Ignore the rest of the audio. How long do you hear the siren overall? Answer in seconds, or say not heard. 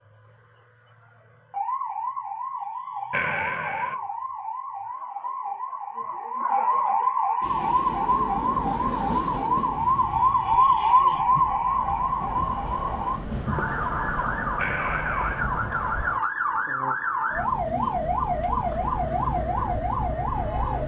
21 s.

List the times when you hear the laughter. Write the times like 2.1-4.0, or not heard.
3.1-4.0, 14.6-15.4.